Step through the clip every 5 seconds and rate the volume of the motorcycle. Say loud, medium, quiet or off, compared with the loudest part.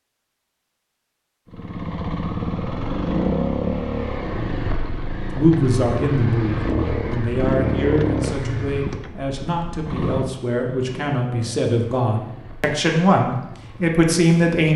loud, loud, medium.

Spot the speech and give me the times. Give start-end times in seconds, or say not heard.
5.3-14.7.